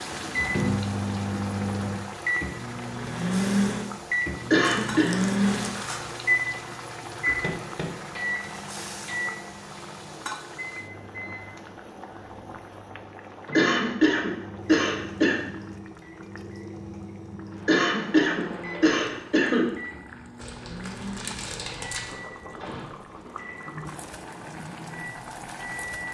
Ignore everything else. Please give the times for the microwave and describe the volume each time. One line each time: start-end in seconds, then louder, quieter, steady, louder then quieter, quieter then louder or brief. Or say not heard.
0.0-26.0 quieter.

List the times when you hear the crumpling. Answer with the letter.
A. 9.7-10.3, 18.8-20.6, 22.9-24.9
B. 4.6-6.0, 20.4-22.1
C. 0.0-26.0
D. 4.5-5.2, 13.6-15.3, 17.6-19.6
B.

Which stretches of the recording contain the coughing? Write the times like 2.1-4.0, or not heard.
4.5-5.2, 13.6-15.3, 17.6-19.6.